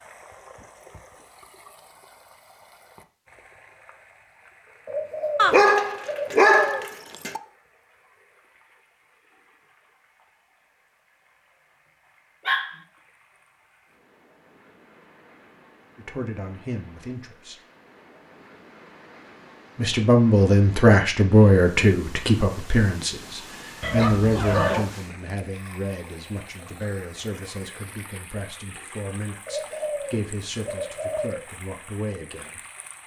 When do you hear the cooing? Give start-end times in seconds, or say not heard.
4.8-6.8, 29.4-31.4.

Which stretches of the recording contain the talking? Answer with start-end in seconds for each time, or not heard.
15.9-17.6, 19.8-32.6.